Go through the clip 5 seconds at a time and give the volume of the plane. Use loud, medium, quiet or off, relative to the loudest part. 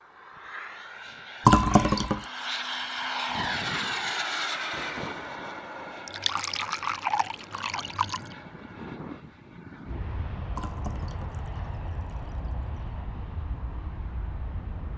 loud, medium, medium.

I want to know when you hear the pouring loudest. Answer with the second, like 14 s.
2 s.